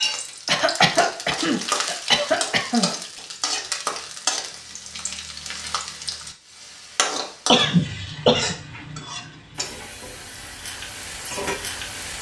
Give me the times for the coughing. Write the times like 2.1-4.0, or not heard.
0.5-2.9, 7.5-8.6.